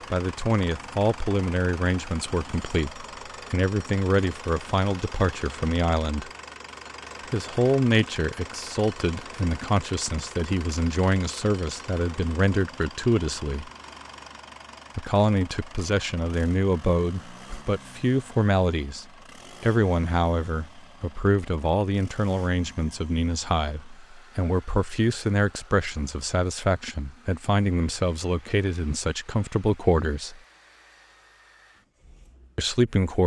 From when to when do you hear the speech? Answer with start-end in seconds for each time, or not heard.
0.1-6.3, 7.3-13.7, 14.9-30.4, 32.5-33.2.